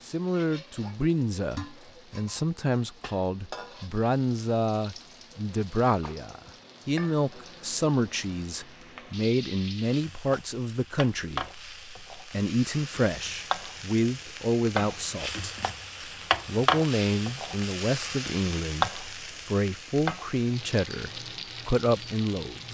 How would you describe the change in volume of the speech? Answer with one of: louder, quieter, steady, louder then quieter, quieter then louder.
steady.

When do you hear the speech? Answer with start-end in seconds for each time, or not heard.
0.0-15.6, 16.4-22.6.